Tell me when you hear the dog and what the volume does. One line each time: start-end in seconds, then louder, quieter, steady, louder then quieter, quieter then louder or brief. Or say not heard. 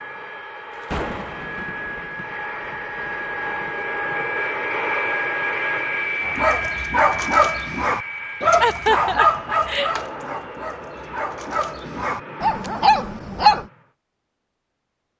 6.2-13.7 quieter then louder.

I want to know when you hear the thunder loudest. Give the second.
1 s.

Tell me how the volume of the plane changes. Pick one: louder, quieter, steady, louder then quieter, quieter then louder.
louder then quieter.